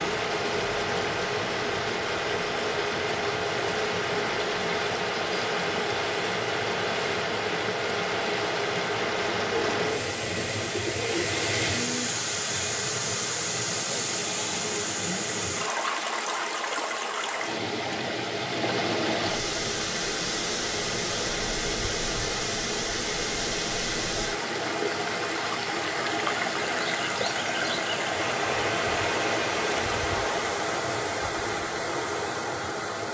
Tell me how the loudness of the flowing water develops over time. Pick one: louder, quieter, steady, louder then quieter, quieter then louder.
steady.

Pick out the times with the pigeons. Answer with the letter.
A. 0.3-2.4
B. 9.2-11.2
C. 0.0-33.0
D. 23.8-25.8
B.